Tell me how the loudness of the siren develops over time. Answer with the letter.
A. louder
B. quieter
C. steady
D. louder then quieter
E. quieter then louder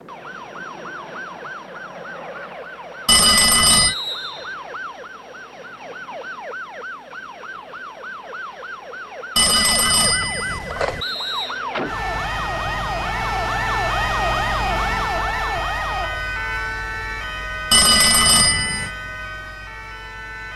D.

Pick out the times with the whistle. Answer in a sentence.
The whistle can be heard from 3.7 to 4.5 s and from 11.0 to 11.6 s.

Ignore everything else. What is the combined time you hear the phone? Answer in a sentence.
You can hear the phone for 4 seconds altogether.